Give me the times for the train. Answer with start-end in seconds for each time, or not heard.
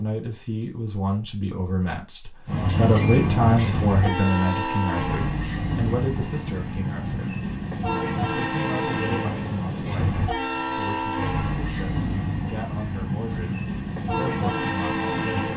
2.5-15.5.